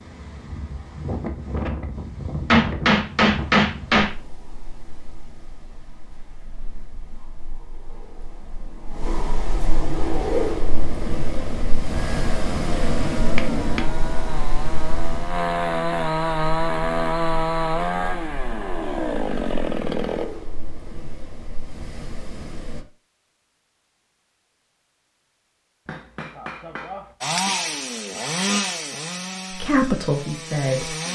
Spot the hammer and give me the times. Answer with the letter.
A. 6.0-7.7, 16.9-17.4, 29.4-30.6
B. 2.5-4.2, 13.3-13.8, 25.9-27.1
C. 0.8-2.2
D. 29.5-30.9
B.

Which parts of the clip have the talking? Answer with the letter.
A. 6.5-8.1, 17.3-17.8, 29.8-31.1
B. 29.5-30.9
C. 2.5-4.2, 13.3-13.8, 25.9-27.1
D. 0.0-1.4
B.